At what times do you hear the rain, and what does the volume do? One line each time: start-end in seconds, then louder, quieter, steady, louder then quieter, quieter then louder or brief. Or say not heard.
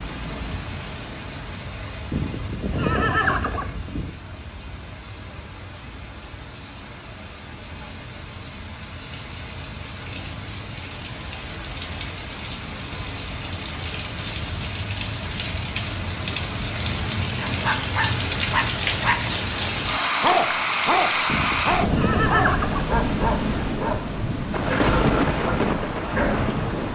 0.0-26.8 louder.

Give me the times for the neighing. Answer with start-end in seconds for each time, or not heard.
2.1-4.1, 21.2-22.9.